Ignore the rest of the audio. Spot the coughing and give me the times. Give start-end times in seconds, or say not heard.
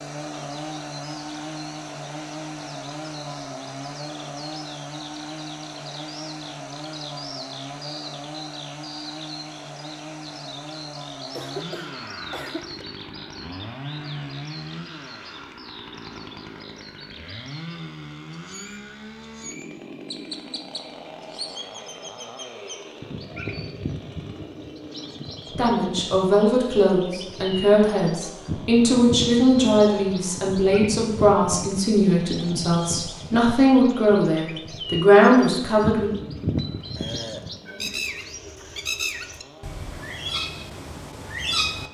11.2-12.8, 37.5-38.0.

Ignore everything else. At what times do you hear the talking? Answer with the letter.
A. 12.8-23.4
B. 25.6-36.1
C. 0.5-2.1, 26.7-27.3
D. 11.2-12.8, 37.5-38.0
B.